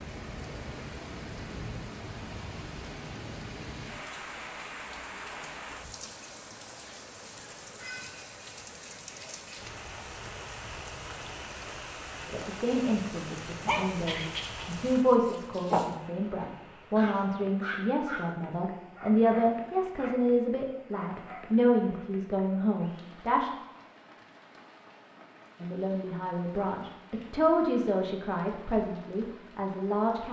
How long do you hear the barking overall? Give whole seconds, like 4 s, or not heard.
7 s.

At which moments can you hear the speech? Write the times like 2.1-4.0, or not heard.
12.2-23.5, 25.6-30.2.